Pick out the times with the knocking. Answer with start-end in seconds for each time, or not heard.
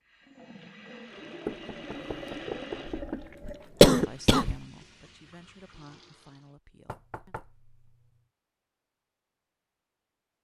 1.4-3.3, 6.8-8.1.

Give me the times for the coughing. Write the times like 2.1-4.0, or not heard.
2.9-4.5.